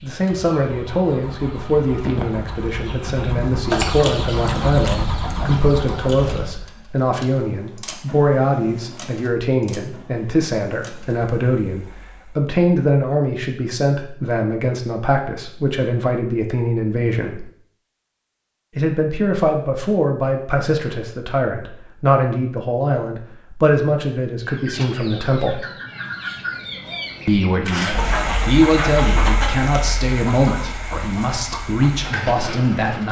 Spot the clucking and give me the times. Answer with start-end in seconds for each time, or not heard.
0.0-6.5, 24.4-32.2.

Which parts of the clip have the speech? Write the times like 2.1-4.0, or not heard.
0.0-17.4, 18.8-25.6, 27.2-33.0.